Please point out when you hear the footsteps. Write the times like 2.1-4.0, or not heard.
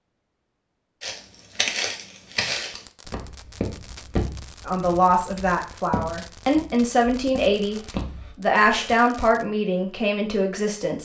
1.0-9.0.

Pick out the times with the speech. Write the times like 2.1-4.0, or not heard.
4.7-11.0.